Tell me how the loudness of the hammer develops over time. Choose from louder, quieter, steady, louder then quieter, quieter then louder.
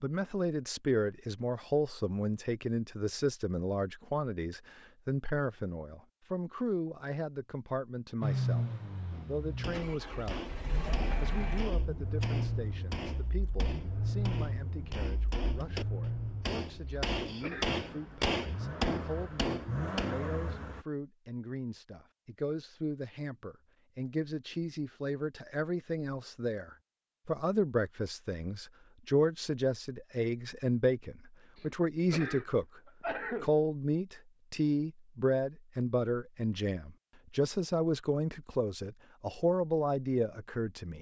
louder.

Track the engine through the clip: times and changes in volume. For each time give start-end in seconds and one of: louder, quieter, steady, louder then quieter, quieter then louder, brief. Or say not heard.
8.2-20.9 steady.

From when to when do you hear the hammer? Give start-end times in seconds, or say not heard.
9.1-20.2.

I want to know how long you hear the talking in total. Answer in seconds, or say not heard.
39 s.